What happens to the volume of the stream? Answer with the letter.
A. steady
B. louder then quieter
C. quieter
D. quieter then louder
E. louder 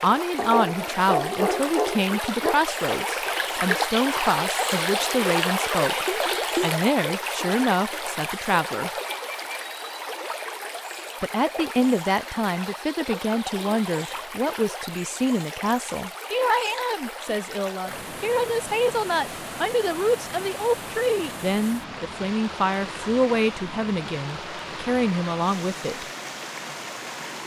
C.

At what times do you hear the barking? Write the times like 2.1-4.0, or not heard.
0.3-2.5.